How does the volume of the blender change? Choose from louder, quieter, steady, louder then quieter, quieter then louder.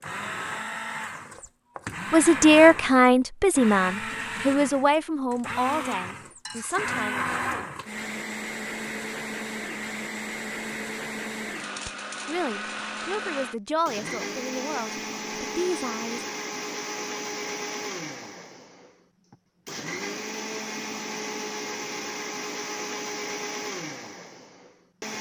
steady.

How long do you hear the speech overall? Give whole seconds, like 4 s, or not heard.
9 s.